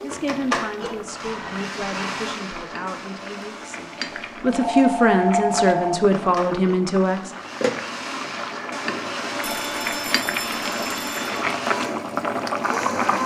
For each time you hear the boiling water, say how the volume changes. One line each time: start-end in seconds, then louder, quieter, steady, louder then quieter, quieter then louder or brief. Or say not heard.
0.0-13.2 louder.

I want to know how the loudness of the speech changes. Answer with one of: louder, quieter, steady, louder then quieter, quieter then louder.
quieter then louder.